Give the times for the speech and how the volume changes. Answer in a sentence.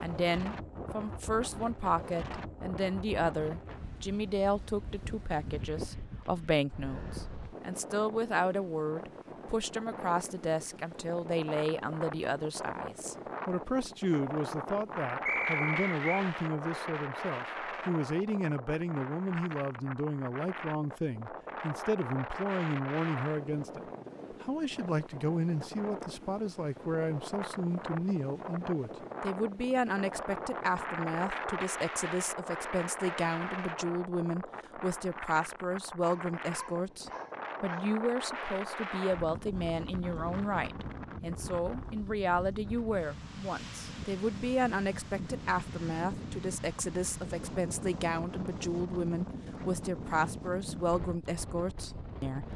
You can hear the speech from 0.0 to 52.5 s, at a steady volume.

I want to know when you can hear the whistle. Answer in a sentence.
The whistle can be heard from 15.2 to 16.2 s.